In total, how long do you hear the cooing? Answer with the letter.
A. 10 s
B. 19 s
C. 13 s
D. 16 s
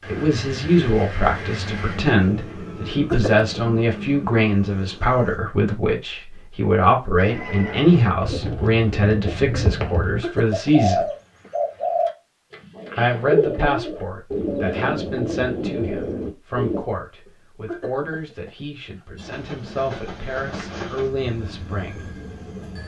A.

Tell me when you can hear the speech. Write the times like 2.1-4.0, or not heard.
0.1-11.1, 12.9-22.1.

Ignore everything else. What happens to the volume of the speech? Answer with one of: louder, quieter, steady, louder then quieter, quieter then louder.
quieter.